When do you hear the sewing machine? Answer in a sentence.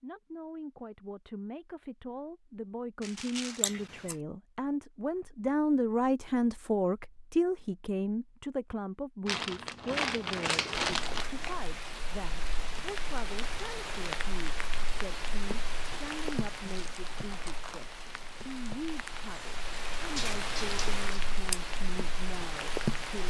The sewing machine can't be heard in this clip.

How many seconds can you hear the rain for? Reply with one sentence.
The rain can be heard for 12 seconds in total.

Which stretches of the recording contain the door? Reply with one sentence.
You can't hear the door here.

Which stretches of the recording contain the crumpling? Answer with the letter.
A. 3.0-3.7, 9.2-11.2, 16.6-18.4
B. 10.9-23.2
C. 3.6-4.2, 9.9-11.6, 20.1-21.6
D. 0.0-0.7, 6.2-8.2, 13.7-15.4
A.